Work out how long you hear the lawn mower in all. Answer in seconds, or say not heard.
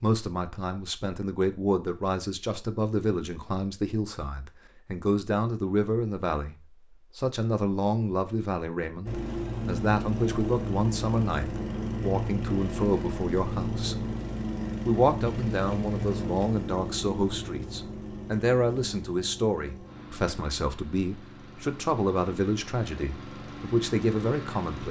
16 s.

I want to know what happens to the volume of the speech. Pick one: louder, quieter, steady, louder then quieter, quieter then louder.
steady.